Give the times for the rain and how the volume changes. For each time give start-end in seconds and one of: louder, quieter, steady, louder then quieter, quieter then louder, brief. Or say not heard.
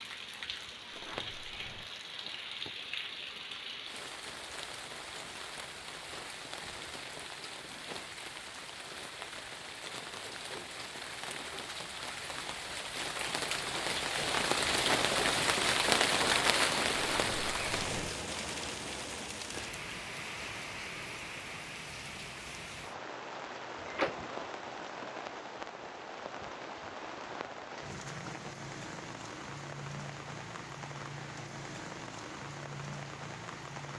0.0-33.9 louder then quieter.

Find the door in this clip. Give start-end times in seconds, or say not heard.
0.9-1.9, 16.9-18.1, 23.9-24.4.